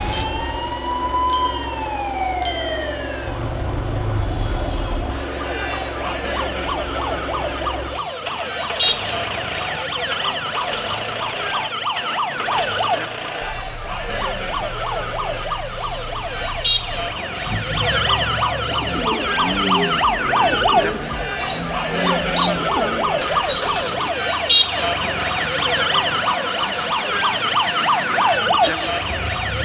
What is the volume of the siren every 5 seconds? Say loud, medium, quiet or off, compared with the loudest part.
medium, medium, medium, loud, loud, loud.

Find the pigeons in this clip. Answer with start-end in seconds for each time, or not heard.
18.6-24.1.